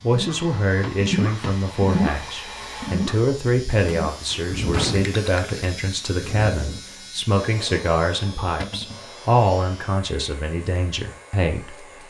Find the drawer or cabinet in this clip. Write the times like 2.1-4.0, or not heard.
0.8-1.6, 4.2-5.1, 8.6-9.1.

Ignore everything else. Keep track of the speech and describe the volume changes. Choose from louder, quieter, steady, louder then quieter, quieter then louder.
steady.